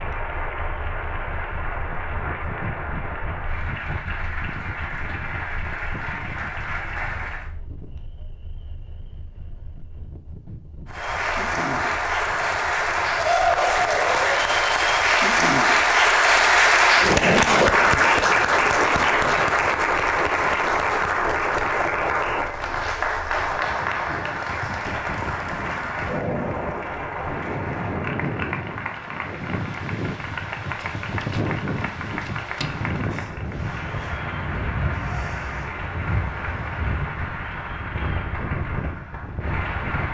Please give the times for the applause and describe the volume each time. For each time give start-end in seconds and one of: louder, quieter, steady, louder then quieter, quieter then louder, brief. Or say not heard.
0.0-7.5 steady
10.8-40.0 quieter.